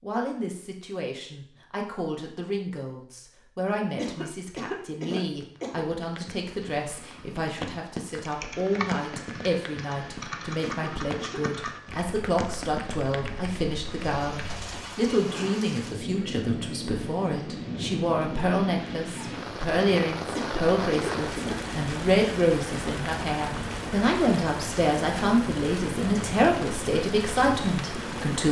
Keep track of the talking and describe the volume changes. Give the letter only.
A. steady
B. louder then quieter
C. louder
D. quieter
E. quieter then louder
C.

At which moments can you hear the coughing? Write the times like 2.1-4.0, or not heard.
4.0-5.8, 10.6-11.4, 20.4-21.6.